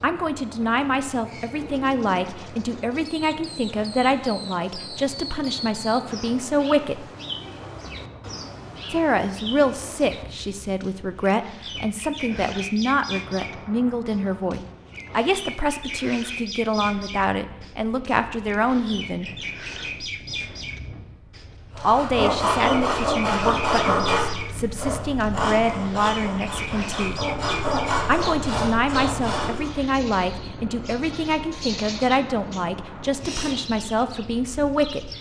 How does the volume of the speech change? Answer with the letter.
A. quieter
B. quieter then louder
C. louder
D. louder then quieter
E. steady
E.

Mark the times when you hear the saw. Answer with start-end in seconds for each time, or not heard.
21.7-29.7.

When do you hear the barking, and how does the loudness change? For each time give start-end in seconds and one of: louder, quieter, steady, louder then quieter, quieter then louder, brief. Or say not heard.
not heard.